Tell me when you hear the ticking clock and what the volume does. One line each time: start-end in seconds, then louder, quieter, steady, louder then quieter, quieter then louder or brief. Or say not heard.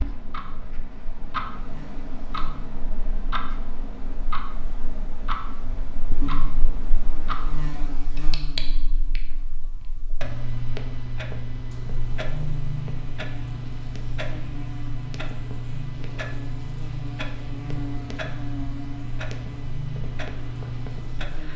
0.0-21.5 steady.